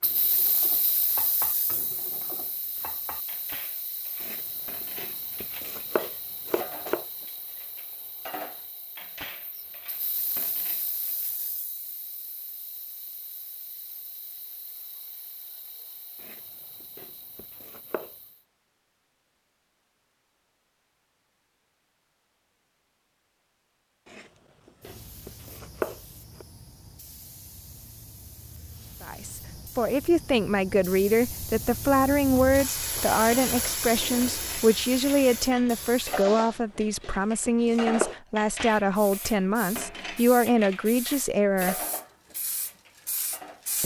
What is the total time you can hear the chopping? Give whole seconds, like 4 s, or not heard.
9 s.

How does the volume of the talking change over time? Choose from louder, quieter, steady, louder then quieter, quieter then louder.
steady.